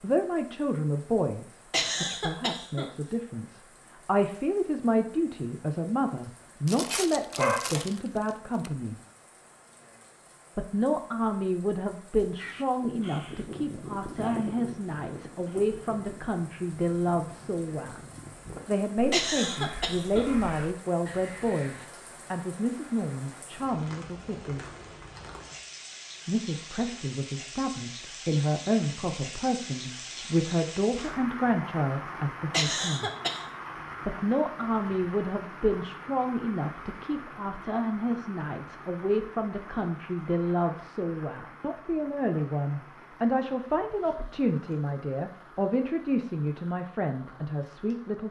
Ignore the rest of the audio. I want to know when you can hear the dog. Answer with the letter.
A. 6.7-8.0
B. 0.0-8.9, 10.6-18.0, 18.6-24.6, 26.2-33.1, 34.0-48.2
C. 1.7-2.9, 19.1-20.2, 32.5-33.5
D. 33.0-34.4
A.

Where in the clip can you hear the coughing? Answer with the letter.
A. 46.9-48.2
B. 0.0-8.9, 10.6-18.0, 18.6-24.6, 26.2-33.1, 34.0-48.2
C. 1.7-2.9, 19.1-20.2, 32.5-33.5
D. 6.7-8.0
C.